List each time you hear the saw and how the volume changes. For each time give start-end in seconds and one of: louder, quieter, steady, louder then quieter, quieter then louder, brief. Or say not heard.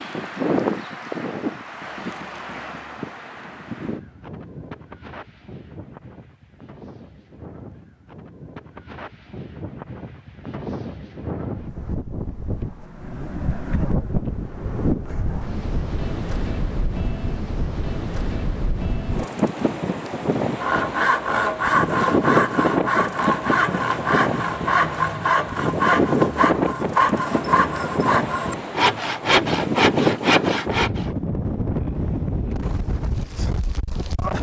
20.6-31.1 steady.